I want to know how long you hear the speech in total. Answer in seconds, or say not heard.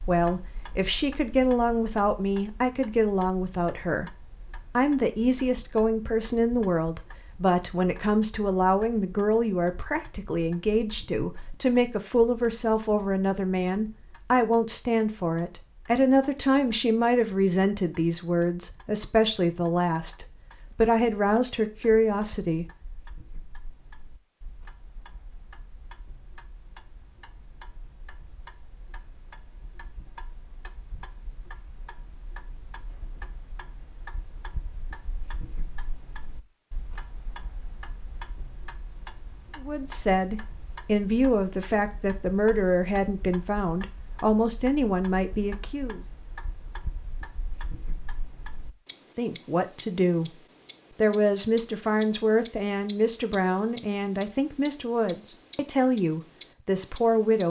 37 s.